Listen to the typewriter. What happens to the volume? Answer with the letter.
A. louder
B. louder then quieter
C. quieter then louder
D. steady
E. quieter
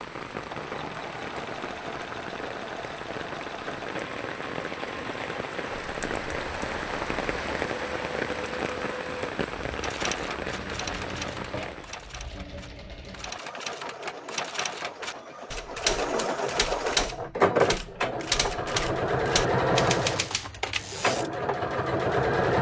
A.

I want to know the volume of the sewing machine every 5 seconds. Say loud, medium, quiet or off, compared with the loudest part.
quiet, quiet, quiet, loud, loud.